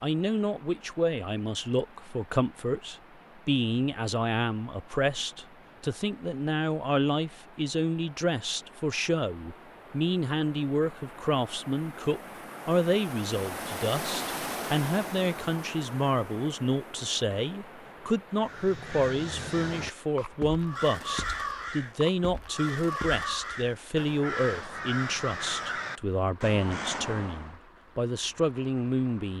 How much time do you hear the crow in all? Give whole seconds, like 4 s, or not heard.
9 s.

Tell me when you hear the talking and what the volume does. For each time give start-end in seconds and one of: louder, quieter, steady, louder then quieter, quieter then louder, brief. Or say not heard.
0.0-29.3 steady.